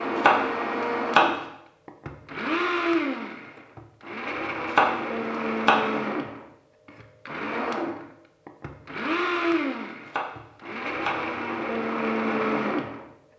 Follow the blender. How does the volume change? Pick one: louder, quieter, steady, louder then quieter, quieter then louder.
steady.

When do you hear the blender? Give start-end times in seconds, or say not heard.
0.0-13.1.